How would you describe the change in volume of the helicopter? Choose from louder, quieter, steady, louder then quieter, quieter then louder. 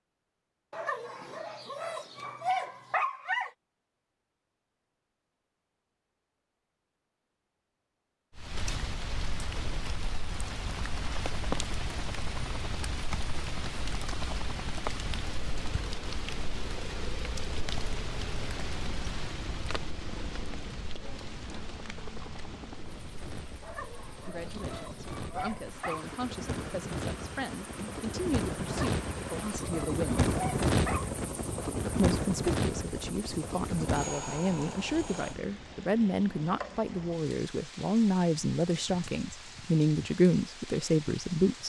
louder.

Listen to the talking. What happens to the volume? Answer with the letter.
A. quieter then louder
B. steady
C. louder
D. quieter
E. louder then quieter
C.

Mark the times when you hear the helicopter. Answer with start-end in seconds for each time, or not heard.
9.4-35.4.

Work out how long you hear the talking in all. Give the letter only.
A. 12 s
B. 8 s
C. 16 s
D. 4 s
C.